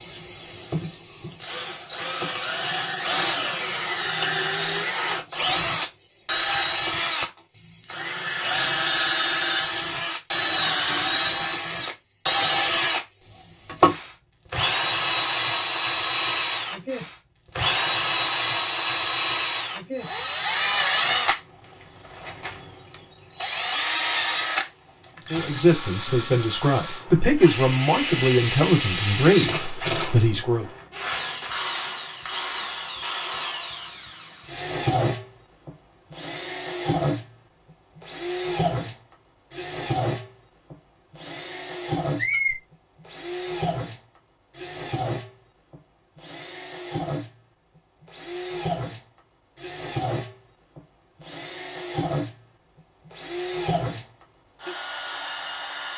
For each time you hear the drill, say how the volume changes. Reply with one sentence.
You can hear the drill from 0.0 to 55.9 s, getting quieter.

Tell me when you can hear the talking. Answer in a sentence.
The talking can be heard from 25.3 to 30.6 s.